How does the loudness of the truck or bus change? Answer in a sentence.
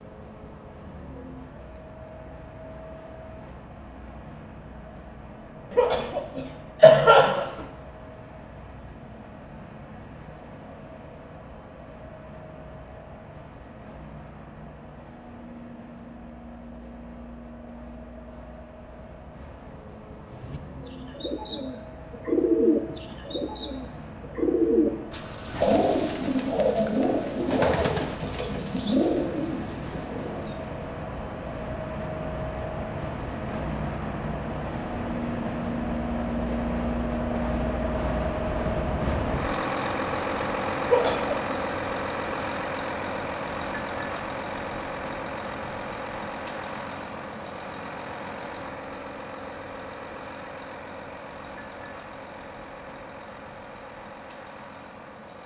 The loudness of the truck or bus goes up, then down.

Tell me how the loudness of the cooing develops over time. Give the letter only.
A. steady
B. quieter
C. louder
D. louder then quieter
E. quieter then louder
B.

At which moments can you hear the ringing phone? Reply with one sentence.
The ringing phone can't be heard in this clip.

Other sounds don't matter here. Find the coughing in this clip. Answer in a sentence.
You can hear the coughing from 5.7 to 7.6 s and from 40.9 to 41.5 s.